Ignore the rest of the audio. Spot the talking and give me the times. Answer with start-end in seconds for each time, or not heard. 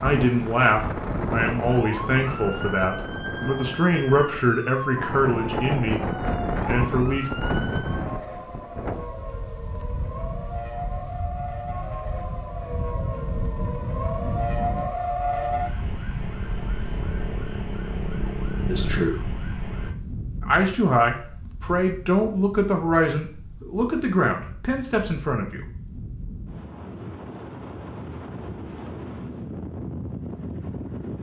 0.0-6.0, 6.7-7.2, 18.6-19.2, 20.4-25.6.